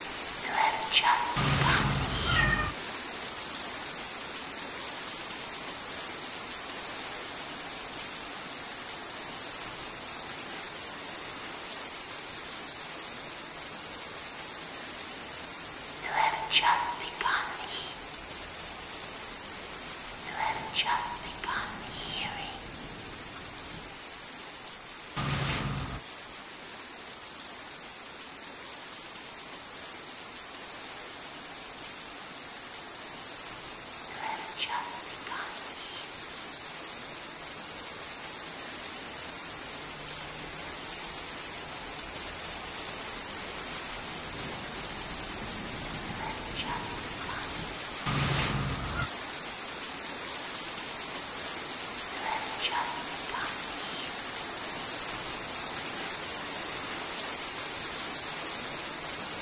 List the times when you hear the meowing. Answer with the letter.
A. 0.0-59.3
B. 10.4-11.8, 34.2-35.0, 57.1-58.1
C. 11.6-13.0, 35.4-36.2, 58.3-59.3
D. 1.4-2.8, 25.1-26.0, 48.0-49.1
D.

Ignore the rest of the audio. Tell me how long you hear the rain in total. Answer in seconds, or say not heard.
59 s.